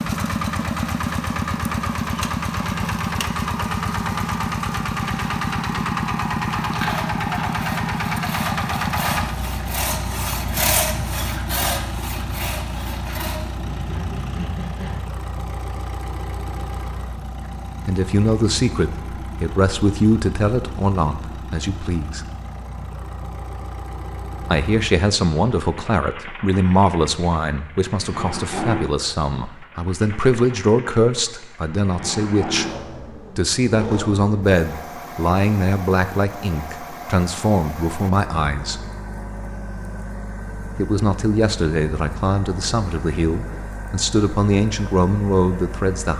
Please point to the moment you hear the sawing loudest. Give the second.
11 s.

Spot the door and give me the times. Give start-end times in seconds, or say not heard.
not heard.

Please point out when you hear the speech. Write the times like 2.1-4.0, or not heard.
17.9-22.2, 24.4-32.7, 33.4-38.8, 40.8-46.1.